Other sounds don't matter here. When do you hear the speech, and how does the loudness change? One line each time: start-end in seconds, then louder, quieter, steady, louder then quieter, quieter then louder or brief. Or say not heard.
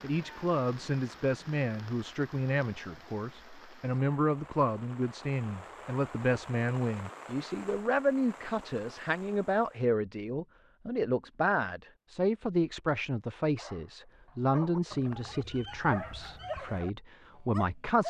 0.0-18.0 steady.